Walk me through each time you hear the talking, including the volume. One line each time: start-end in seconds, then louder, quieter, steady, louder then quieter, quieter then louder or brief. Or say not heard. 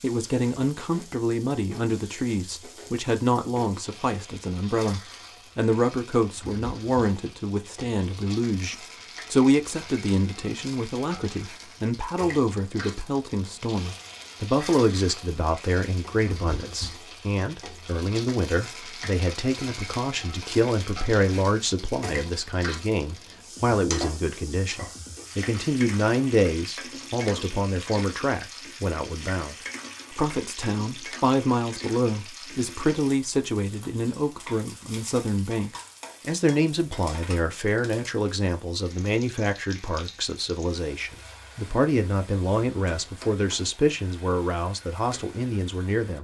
0.0-46.1 steady.